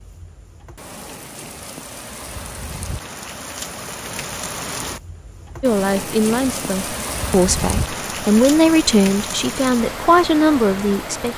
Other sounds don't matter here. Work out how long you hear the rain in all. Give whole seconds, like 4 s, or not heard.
11 s.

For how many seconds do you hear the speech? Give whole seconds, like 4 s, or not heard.
6 s.